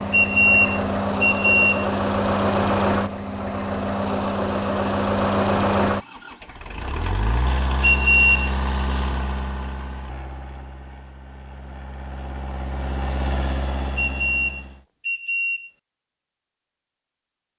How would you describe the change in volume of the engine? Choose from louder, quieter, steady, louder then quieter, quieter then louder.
quieter.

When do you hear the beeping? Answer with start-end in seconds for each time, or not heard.
0.1-1.9, 7.8-8.5, 13.9-15.7.